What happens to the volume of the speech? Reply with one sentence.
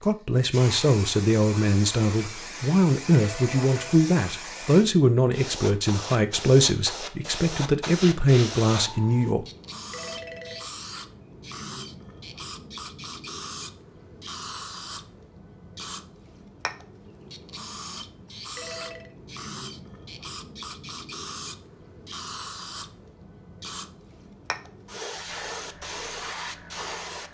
The volume of the speech stays about the same.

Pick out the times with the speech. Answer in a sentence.
You can hear the speech from 0.0 to 9.4 s.